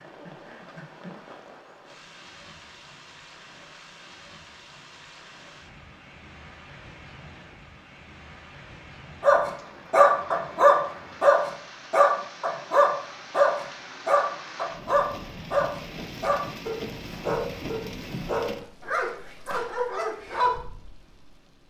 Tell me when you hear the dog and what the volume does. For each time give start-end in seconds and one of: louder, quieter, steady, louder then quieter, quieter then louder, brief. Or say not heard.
9.2-20.6 quieter.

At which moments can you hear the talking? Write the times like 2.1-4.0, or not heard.
not heard.